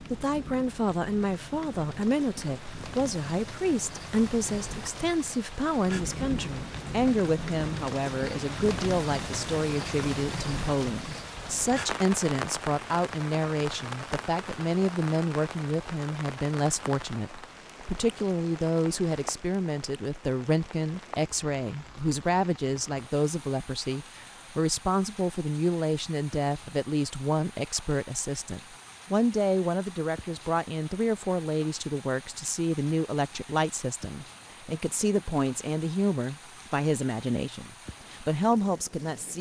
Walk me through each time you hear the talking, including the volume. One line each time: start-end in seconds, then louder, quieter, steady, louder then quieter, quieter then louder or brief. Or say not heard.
0.0-39.3 steady.